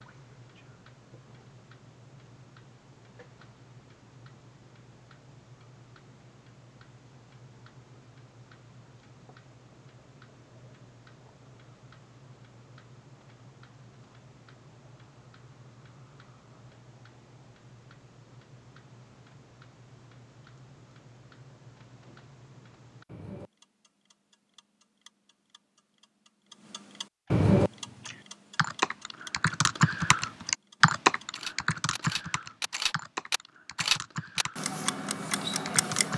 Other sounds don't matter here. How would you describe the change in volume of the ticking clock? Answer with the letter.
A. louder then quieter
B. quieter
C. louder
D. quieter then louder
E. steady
C.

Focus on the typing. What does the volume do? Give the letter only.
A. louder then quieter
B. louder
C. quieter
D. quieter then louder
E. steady
A.